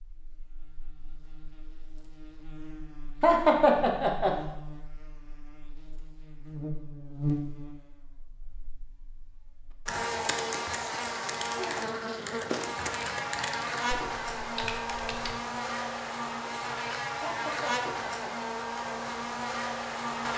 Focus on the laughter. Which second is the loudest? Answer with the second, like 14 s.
4 s.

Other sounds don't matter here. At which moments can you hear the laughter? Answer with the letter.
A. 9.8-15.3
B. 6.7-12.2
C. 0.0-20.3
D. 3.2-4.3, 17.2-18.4
D.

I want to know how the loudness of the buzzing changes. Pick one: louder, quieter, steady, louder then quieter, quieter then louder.
louder.